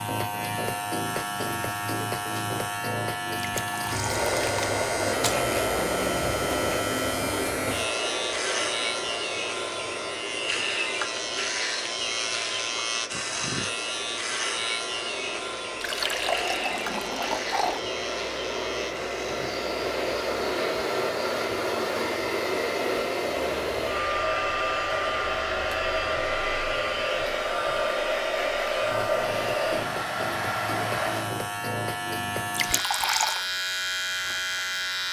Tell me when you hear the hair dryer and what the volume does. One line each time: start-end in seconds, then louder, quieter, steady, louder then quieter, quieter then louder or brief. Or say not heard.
4.0-31.4 quieter then louder.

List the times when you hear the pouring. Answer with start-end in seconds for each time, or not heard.
3.4-4.8, 15.8-17.9, 32.5-33.4.